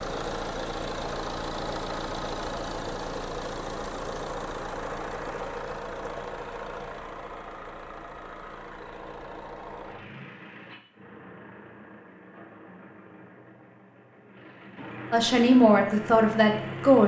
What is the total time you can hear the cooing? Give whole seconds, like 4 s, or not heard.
not heard.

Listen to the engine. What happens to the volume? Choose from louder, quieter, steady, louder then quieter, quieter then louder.
quieter then louder.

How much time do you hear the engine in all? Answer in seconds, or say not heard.
17 s.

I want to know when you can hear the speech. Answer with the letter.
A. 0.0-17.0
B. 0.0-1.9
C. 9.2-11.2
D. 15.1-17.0
D.